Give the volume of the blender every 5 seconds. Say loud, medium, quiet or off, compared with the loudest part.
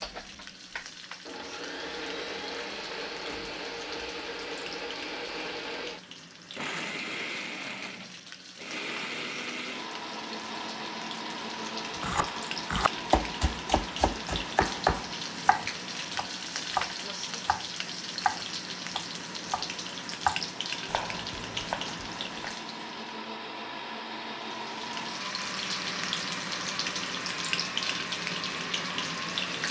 loud, loud, loud, medium, loud, loud.